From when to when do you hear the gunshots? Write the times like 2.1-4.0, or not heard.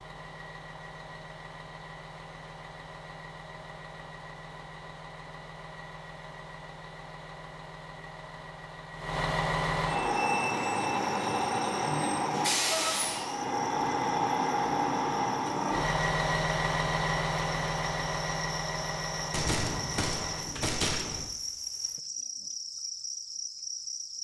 19.3-21.2.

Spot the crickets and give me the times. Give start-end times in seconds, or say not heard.
10.1-24.1.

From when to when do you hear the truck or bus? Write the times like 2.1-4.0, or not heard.
0.0-20.4.